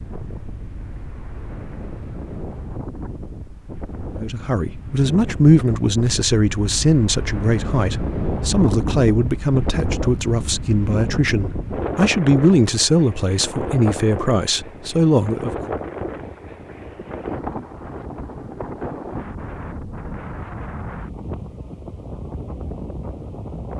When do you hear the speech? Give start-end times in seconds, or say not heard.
4.1-15.8.